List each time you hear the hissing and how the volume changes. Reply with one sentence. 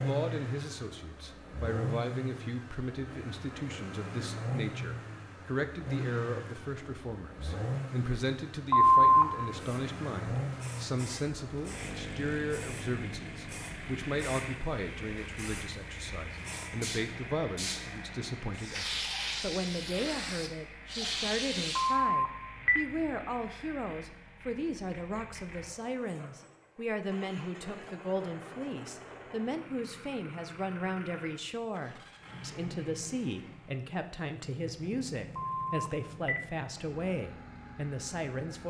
The hissing can be heard from 9.6 to 21.9 s, getting louder.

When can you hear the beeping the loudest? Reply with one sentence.
The loudest moment of the beeping is at 9 seconds.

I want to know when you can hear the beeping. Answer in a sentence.
The beeping can be heard from 8.7 to 9.2 s, from 21.8 to 22.8 s and from 35.4 to 36.4 s.